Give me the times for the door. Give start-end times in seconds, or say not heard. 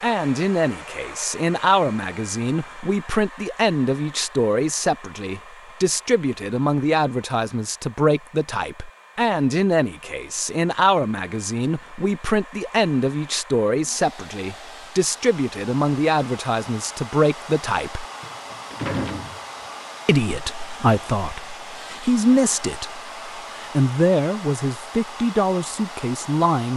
18.2-19.4.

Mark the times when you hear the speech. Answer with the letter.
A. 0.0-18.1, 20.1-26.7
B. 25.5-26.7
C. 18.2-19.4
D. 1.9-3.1
A.